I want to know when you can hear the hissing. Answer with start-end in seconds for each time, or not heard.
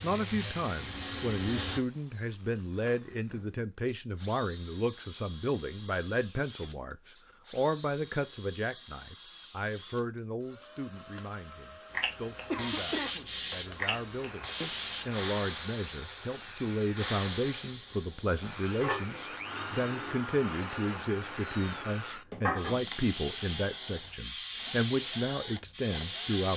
0.0-1.8, 11.9-26.5.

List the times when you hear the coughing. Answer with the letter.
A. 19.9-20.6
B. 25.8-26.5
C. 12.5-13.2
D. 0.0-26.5
C.